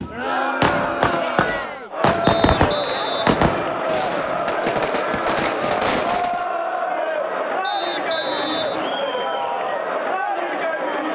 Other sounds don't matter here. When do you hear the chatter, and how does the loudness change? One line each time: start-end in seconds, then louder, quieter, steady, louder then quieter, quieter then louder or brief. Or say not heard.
0.0-11.1 steady.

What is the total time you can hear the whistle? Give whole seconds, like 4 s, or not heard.
3 s.